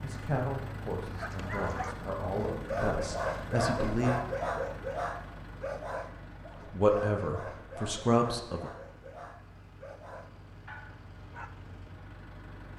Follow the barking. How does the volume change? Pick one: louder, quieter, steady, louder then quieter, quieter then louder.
quieter.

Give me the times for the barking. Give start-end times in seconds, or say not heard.
1.1-11.5.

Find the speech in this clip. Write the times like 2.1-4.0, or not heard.
0.0-4.2, 6.7-8.7.